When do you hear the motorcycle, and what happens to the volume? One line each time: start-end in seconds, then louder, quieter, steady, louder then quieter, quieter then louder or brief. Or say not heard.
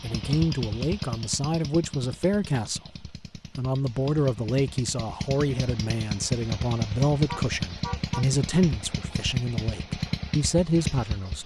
0.0-11.4 quieter then louder.